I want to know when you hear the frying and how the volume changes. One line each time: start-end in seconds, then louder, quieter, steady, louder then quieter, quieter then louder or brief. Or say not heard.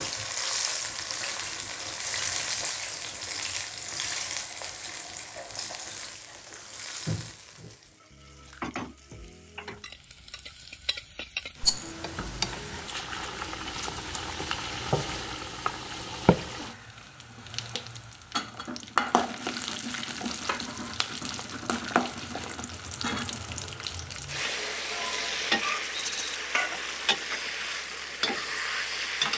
0.0-29.3 quieter then louder.